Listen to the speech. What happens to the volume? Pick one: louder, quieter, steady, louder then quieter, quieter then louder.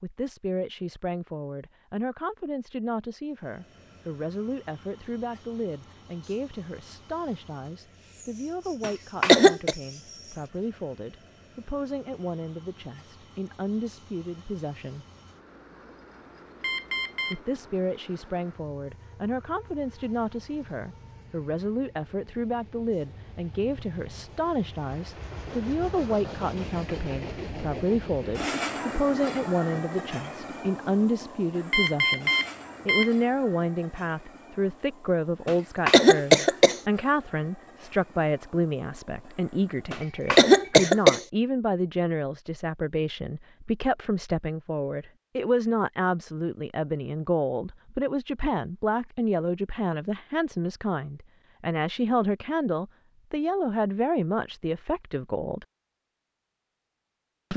louder.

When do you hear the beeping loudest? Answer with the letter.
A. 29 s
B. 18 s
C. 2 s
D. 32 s
D.